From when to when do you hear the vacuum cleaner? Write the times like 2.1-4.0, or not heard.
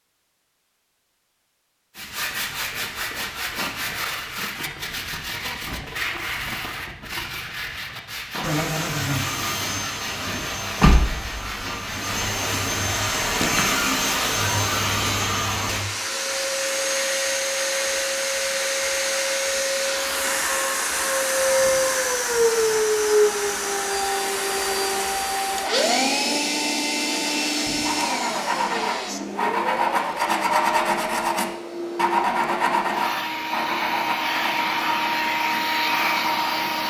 8.4-36.8.